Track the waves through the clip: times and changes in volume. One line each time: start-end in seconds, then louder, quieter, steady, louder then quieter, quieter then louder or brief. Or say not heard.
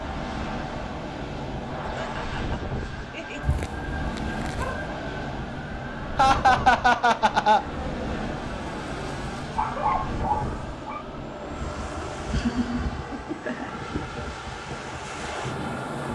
0.0-16.1 steady.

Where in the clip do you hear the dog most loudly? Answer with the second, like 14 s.
10 s.